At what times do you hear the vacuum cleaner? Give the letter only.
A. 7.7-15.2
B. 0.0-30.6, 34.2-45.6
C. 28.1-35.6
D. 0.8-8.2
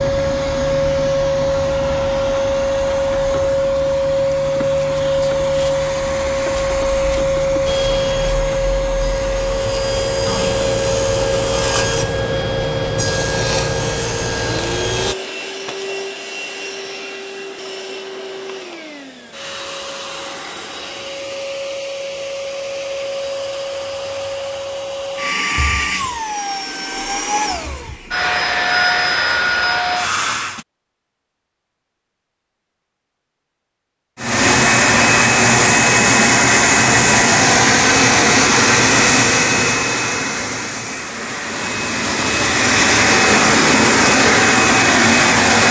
B.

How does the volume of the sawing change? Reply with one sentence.
The loudness of the sawing goes up.